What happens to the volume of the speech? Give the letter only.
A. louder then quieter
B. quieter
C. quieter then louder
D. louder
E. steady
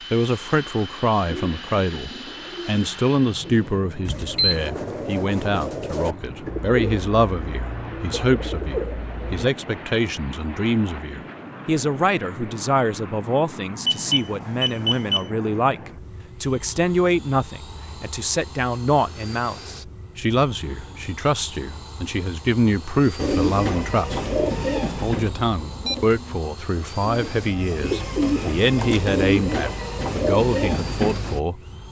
E.